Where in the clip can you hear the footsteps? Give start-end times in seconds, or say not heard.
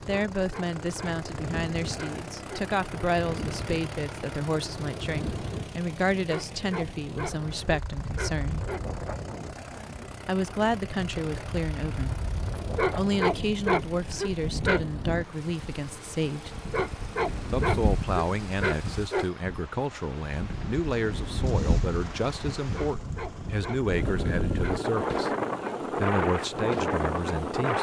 not heard.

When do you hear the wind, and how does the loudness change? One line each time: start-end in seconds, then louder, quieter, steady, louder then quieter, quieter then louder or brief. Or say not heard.
0.0-27.7 louder.